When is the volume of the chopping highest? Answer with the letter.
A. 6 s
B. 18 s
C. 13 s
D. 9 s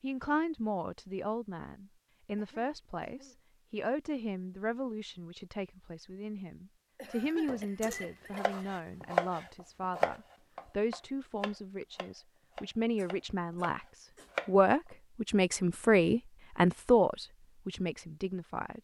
D.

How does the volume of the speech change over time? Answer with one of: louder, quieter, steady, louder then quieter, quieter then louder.
louder.